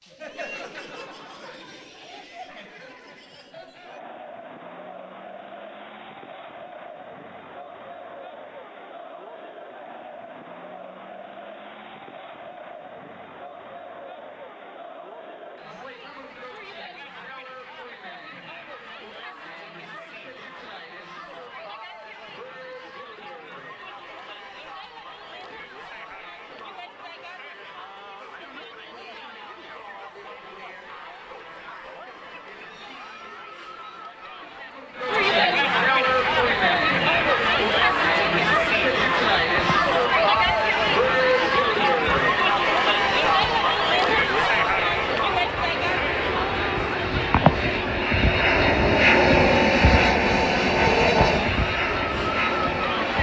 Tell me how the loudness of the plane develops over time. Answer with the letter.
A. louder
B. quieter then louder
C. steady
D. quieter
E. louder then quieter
A.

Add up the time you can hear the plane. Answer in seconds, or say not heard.
17 s.